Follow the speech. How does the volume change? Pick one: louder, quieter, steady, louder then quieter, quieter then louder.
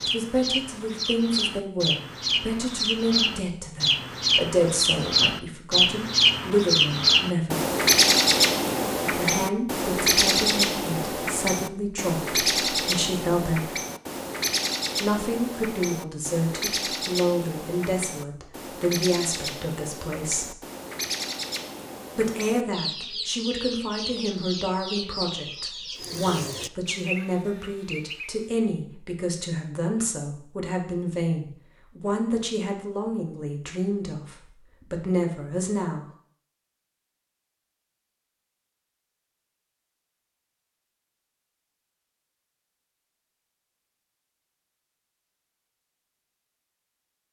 steady.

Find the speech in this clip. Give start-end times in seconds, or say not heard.
0.0-7.6, 9.1-13.7, 15.0-20.6, 22.1-36.0.